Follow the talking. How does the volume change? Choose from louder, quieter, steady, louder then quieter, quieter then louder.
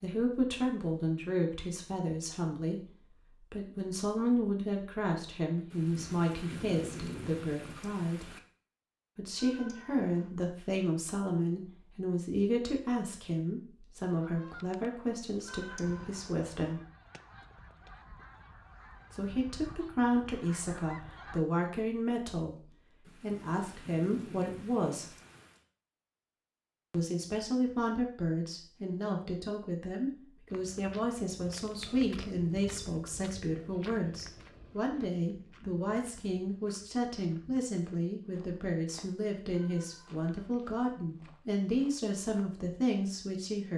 steady.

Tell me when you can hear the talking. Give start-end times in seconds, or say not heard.
0.0-8.3, 9.2-16.8, 19.1-25.1, 26.9-43.7.